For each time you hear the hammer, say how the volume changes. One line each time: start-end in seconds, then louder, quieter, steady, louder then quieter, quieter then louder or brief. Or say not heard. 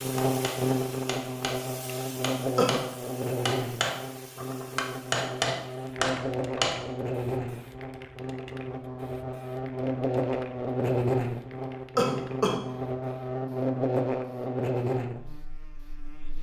0.0-6.8 louder.